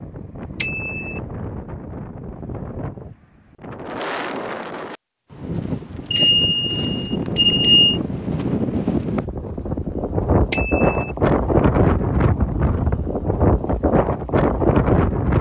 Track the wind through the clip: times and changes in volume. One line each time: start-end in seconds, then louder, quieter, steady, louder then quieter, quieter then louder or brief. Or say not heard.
0.0-15.3 louder.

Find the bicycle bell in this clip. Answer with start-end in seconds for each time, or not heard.
0.6-1.2, 6.1-8.0, 10.5-11.1.